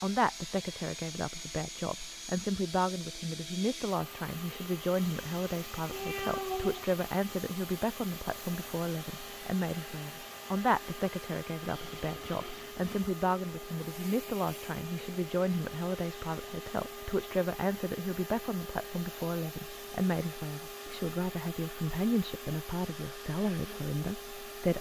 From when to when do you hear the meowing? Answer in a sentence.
You can hear the meowing from 5.9 to 6.8 s.